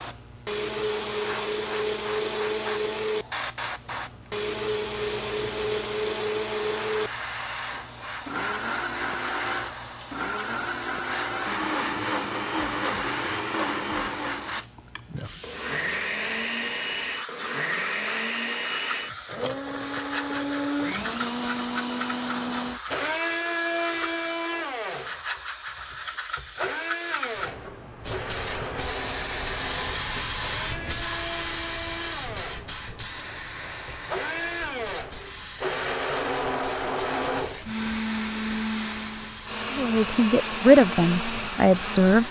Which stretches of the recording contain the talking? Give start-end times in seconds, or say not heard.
39.7-42.2.